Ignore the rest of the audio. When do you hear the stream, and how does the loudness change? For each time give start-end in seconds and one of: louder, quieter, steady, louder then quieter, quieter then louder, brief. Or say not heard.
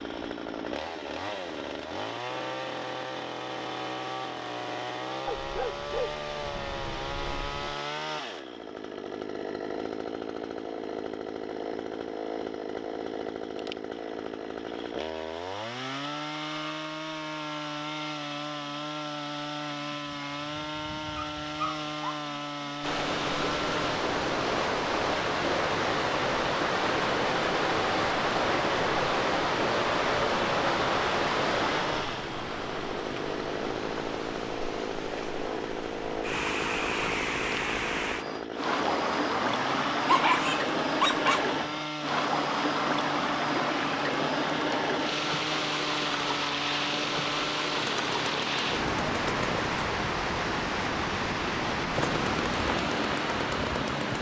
22.8-54.1 steady.